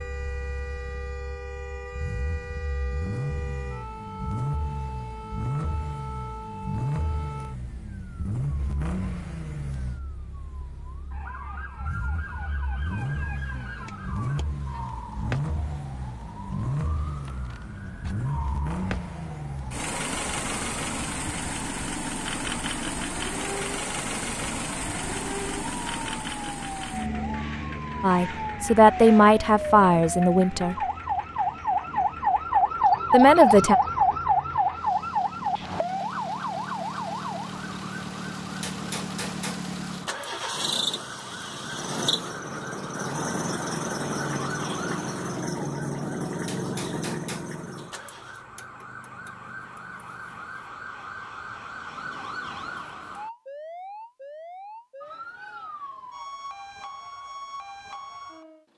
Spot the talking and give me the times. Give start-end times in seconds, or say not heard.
28.0-30.8, 33.1-33.8.